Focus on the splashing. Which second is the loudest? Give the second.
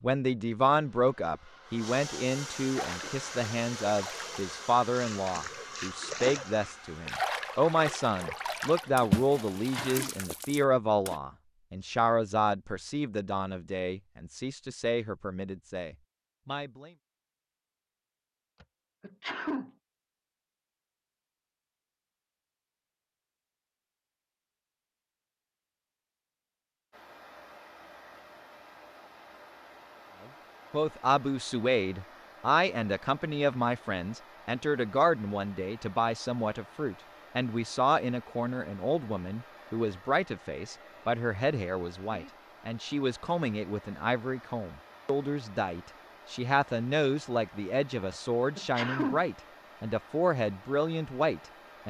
9 s.